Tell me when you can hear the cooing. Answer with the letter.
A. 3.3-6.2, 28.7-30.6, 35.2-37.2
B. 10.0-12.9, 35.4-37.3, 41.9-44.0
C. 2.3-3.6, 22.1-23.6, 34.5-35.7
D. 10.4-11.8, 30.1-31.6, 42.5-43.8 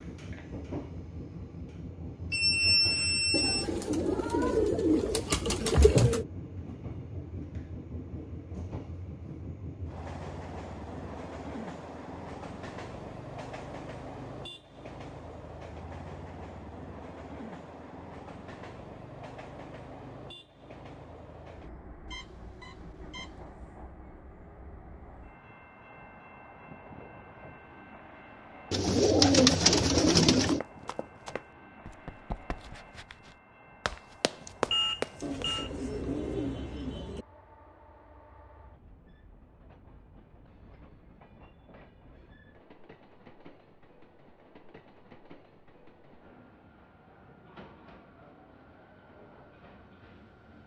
A.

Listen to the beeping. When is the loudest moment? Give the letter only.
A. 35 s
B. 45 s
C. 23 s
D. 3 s
D.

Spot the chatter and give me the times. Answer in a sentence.
You can't hear the chatter here.